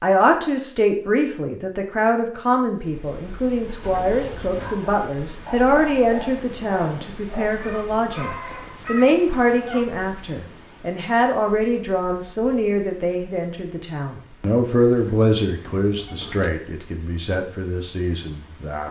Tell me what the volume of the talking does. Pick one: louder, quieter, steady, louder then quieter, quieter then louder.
steady.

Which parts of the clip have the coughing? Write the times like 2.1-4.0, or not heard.
not heard.